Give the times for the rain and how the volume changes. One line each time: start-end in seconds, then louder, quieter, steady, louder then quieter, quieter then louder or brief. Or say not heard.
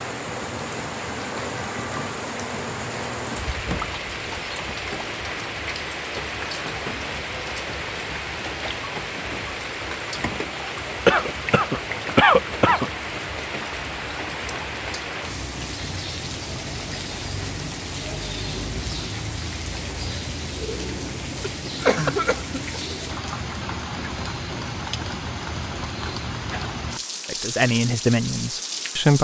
0.0-29.1 steady.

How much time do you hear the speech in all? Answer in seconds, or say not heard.
2 s.